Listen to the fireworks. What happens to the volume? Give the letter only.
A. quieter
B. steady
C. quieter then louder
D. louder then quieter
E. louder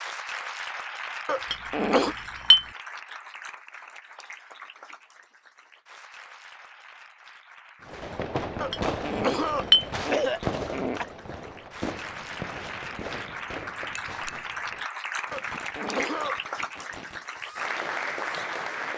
A.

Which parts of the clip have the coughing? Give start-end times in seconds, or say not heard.
1.2-2.1, 8.6-11.1, 15.3-16.9.